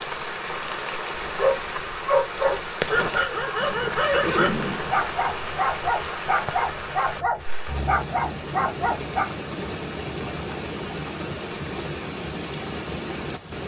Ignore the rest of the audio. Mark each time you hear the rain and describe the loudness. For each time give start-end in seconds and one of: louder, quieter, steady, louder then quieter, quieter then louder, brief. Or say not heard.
0.0-13.6 steady.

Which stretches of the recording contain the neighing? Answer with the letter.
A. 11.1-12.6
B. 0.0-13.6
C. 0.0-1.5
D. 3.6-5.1
D.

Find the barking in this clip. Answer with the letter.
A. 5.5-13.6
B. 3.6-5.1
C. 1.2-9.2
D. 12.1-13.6
C.